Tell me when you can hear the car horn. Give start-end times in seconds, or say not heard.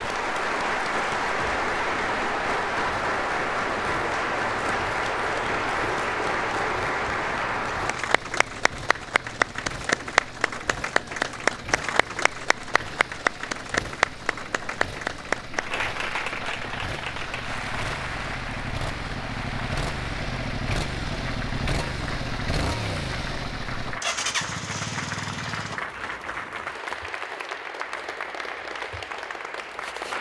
not heard.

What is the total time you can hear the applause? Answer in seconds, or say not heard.
30 s.